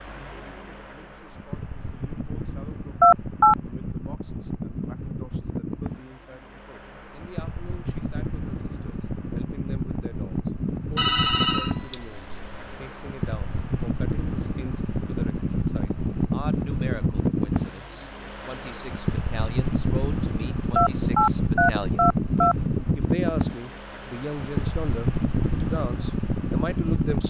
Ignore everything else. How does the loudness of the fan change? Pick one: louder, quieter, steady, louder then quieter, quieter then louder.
louder.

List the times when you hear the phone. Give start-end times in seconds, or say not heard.
3.0-3.5, 10.9-12.8, 20.8-22.6.